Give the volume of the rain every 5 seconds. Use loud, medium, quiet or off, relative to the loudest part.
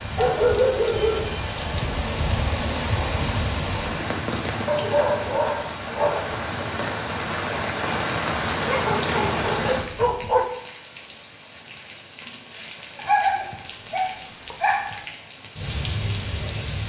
loud, loud, medium, medium.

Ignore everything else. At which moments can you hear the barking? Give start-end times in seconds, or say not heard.
0.1-1.3, 4.7-6.4, 8.7-10.4, 12.9-15.0.